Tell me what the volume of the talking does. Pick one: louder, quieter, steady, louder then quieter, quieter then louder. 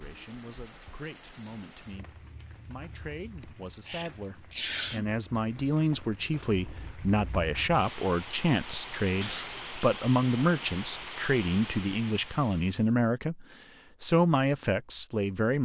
louder.